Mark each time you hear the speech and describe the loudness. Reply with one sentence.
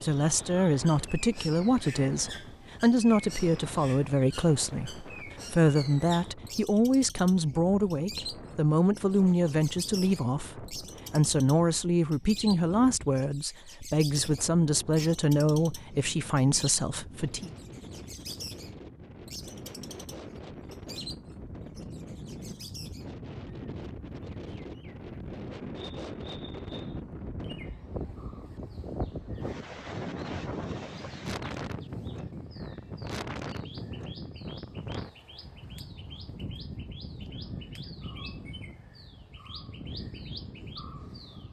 You can hear the speech from 0.0 to 17.5 s, at a steady volume.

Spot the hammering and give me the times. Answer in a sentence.
The hammering can't be heard in this clip.